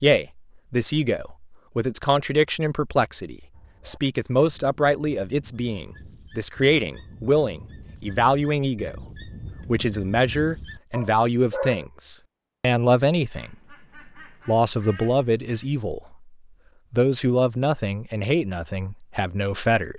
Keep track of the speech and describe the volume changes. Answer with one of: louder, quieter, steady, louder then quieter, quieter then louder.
steady.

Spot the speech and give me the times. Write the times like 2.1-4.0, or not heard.
0.0-9.0, 9.7-13.8, 14.4-19.9.